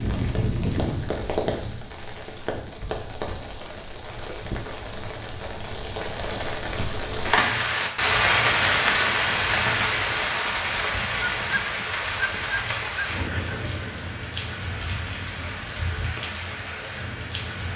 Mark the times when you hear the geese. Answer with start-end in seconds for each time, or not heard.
11.0-13.1.